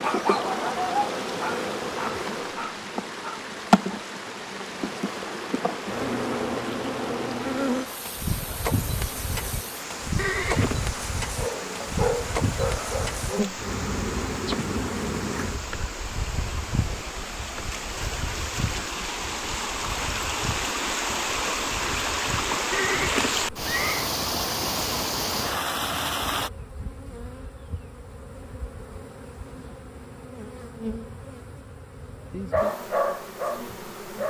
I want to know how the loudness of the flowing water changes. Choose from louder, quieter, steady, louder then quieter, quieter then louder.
louder.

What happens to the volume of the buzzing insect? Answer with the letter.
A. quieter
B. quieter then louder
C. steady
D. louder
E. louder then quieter
A.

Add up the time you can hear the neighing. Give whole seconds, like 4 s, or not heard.
2 s.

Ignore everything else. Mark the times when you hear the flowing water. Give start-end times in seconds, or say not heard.
0.0-26.5.